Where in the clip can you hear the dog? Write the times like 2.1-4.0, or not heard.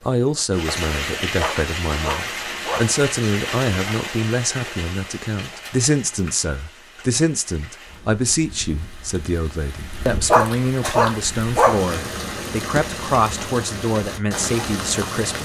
1.4-2.9, 10.3-11.8.